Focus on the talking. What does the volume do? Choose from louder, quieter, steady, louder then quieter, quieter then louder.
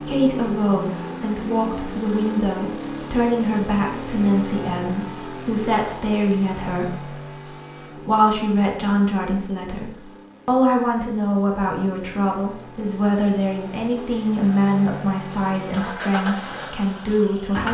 steady.